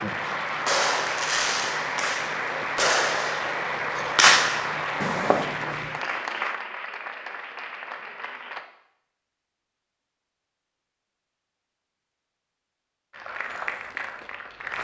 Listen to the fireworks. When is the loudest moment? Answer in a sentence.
The volume of the fireworks peaks at 4 seconds.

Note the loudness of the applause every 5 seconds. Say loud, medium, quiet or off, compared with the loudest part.
loud, loud, medium.